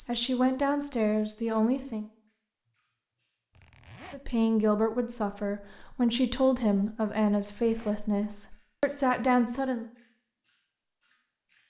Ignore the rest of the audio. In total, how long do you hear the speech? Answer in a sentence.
The speech can be heard for 8 seconds in total.